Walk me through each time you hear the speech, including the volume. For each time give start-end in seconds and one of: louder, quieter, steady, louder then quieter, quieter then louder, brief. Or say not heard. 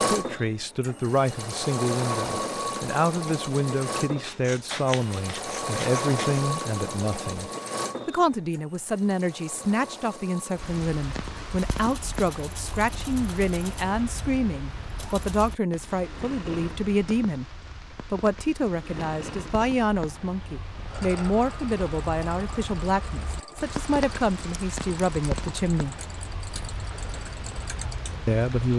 0.0-25.9 steady
28.2-28.7 brief.